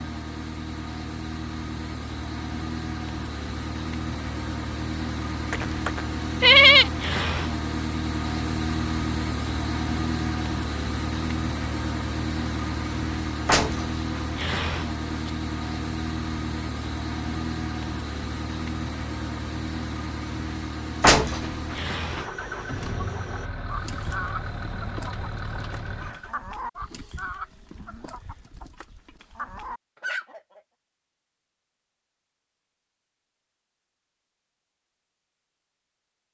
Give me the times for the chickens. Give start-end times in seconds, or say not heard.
22.1-30.6.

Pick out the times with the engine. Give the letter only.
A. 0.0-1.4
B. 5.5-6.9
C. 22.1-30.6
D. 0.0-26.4
D.